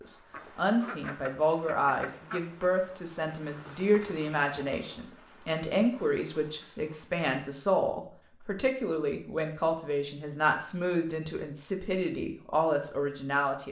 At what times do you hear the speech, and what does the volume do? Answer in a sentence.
The speech can be heard from 0.0 to 13.6 s, at a steady volume.